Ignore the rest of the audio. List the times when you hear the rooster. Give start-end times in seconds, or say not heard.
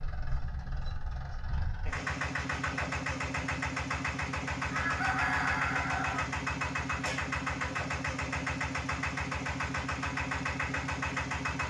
4.7-6.2.